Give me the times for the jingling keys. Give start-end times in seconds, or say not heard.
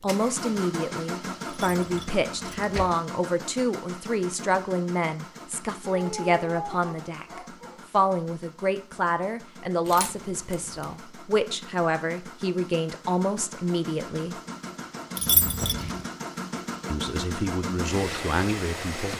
1.4-2.9, 9.8-10.8, 15.2-15.9.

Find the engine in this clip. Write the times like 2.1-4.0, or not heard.
0.0-19.1.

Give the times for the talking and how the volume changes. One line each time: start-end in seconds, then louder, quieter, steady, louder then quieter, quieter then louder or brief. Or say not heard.
0.0-14.3 steady
16.9-19.1 brief.